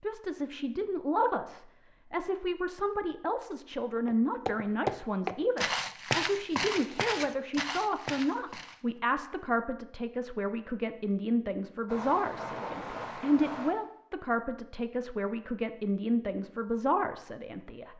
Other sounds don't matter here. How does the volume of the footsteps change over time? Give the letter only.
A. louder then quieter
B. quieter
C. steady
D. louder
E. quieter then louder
B.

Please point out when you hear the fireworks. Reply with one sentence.
The fireworks can be heard from 11.8 to 13.8 s.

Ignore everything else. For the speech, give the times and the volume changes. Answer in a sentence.
The speech can be heard from 0.0 to 17.9 s, at a steady volume.